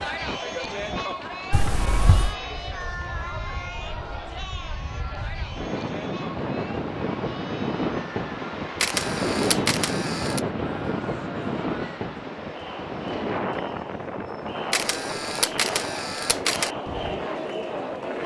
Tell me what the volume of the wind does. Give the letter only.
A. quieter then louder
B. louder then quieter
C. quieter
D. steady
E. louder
B.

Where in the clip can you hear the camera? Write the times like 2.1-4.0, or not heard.
1.5-2.4, 8.8-10.4, 14.7-16.7.